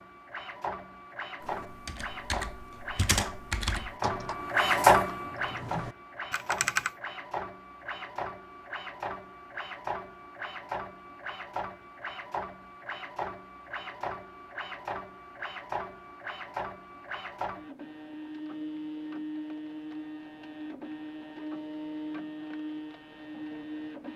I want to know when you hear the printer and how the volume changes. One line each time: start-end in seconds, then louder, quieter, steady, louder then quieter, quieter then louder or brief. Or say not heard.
0.0-24.1 quieter.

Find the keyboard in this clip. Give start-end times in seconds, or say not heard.
1.4-7.0.